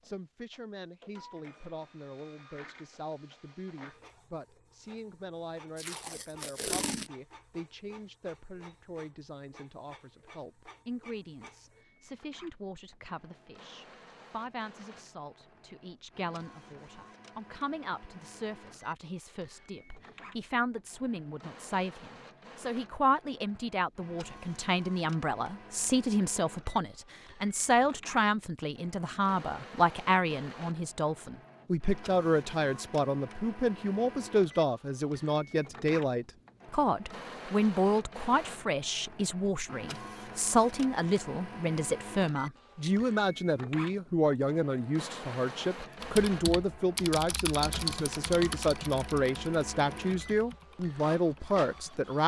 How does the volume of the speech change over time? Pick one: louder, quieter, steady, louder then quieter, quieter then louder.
louder.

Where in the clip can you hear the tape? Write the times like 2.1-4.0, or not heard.
5.8-7.1.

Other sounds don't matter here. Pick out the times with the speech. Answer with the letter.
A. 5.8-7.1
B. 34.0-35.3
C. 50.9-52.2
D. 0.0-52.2
D.